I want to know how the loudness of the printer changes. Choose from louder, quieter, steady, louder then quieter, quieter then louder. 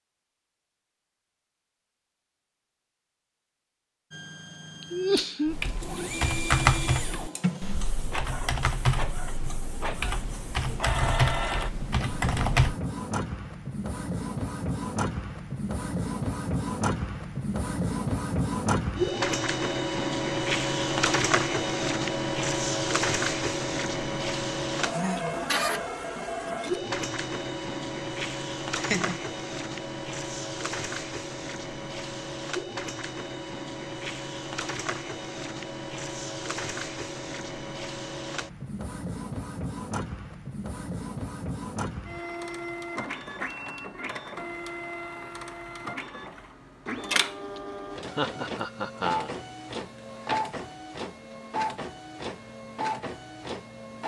louder then quieter.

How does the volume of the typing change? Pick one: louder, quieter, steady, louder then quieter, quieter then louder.
quieter then louder.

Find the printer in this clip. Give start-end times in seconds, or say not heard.
4.1-54.0.